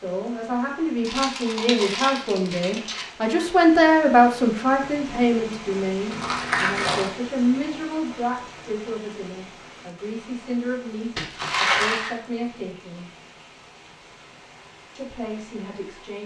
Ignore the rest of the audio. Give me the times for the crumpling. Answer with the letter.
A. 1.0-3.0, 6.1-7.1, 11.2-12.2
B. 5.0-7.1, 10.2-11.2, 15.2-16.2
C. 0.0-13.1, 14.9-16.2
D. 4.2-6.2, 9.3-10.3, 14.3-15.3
A.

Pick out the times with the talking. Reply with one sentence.
You can hear the talking from 0.0 to 13.1 s and from 14.9 to 16.2 s.